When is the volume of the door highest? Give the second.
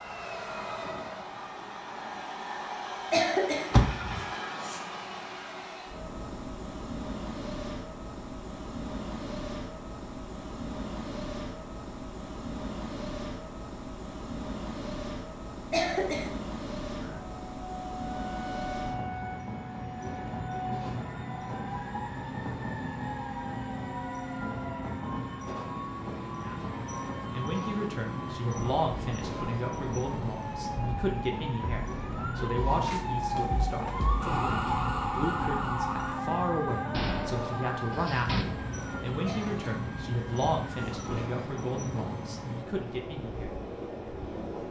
4 s.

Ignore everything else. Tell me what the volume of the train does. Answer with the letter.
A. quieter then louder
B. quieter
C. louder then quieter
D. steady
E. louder
D.